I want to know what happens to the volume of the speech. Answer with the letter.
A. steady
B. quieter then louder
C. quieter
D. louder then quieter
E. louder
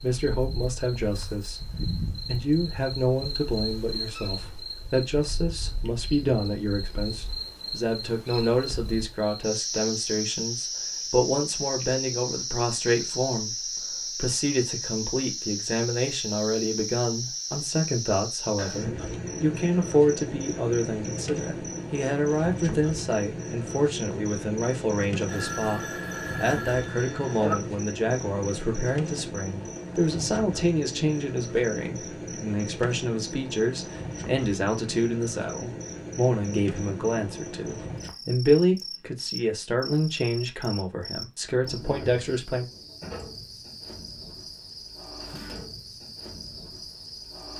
A.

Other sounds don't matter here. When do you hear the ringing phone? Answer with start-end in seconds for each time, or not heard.
25.2-27.6.